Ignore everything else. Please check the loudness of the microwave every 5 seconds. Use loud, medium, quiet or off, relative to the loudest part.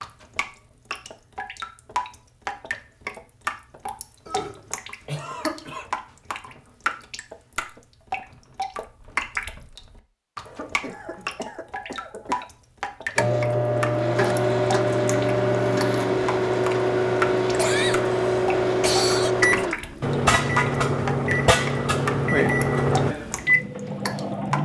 off, off, loud, loud, loud.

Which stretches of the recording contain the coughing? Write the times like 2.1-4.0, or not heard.
4.2-5.9, 10.4-12.4, 17.6-19.4.